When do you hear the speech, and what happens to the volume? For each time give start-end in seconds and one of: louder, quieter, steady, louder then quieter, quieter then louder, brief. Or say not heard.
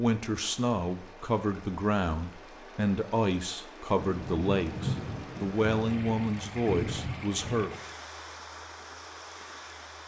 0.0-7.7 steady.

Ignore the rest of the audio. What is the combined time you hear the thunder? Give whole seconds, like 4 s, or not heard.
4 s.